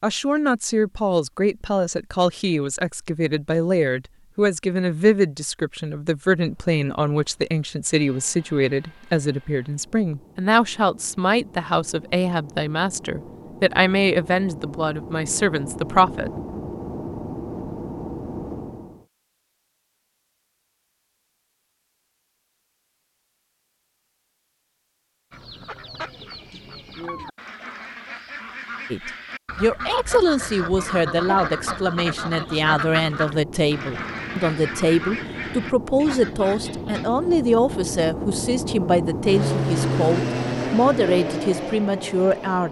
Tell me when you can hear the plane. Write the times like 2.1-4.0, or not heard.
6.3-19.1, 30.3-42.6.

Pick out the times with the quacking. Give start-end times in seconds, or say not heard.
25.3-37.3.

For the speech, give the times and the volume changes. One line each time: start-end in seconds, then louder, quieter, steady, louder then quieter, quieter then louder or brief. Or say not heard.
0.0-16.3 steady
28.9-42.6 steady.